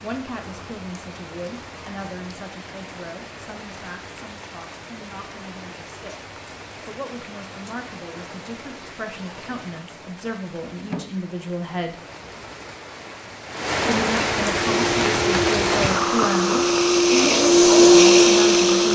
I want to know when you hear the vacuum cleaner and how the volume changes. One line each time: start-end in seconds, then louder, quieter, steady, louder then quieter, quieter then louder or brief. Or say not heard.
14.6-18.8 louder.